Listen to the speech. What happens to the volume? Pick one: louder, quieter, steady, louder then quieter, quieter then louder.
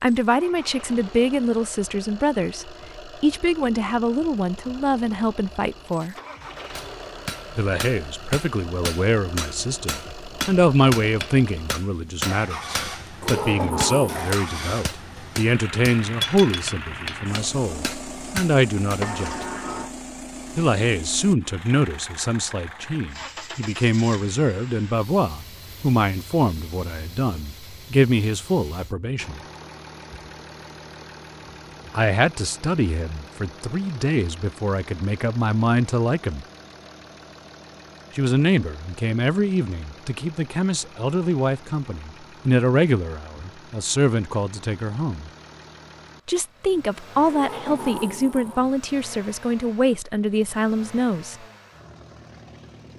steady.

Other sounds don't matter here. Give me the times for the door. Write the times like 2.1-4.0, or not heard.
13.2-14.4, 19.0-19.9, 47.2-48.8.